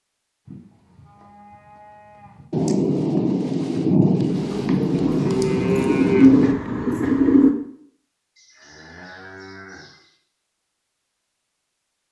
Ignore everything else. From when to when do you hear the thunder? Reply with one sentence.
You can hear the thunder from 2.5 to 6.5 s.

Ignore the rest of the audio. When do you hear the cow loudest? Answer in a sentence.
The volume of the cow peaks at 6 seconds.